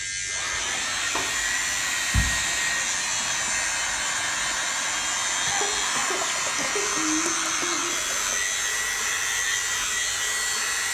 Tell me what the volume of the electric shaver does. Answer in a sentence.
The loudness of the electric shaver stays about the same.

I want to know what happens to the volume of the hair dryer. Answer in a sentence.
The loudness of the hair dryer stays about the same.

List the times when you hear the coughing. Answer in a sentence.
The coughing can be heard from 5.5 to 7.0 s.